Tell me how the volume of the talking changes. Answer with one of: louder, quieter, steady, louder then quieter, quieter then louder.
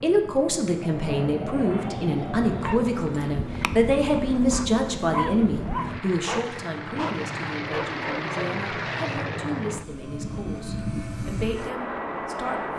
quieter.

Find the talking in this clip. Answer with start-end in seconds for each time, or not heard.
0.0-12.6.